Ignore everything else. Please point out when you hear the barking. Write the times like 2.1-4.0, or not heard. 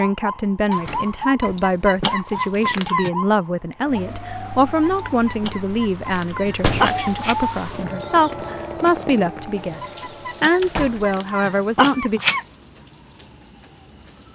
1.4-3.1, 4.8-7.3, 9.8-12.4.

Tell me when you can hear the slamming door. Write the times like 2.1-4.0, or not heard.
0.7-1.6, 6.5-7.2, 10.6-11.1.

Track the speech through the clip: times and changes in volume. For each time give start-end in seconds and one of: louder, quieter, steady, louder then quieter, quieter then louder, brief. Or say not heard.
0.0-12.2 steady.